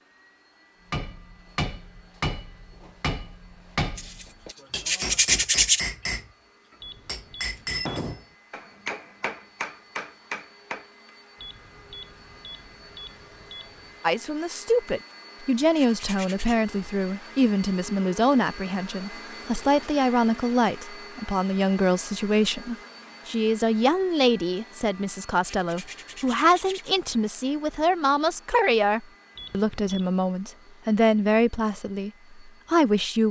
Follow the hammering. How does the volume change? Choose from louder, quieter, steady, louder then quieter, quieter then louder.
steady.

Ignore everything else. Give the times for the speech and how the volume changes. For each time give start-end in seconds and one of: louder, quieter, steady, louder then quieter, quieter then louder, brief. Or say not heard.
14.0-33.2 steady.